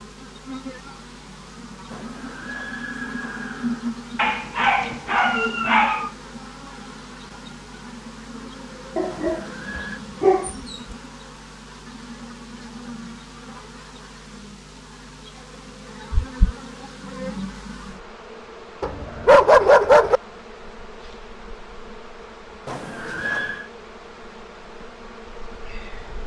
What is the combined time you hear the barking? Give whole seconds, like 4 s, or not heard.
5 s.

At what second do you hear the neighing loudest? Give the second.
23 s.